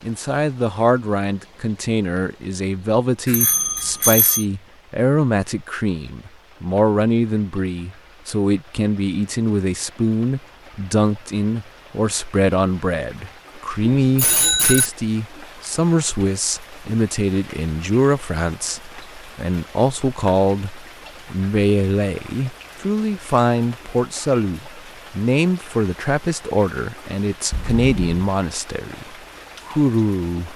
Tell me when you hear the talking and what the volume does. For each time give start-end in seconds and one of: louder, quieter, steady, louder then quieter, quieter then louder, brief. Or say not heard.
0.0-30.5 steady.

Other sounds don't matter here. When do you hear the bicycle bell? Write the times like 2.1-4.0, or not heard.
3.2-4.5, 14.0-14.9, 27.5-28.2.